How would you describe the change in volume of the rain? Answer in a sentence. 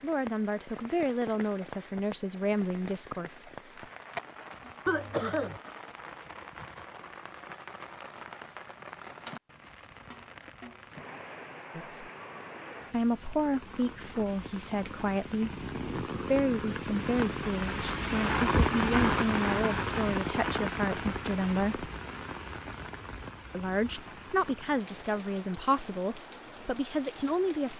The loudness of the rain goes up, then down.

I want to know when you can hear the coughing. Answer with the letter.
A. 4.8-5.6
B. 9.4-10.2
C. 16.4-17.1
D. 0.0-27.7
A.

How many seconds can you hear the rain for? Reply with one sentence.
The rain can be heard for 28 seconds in total.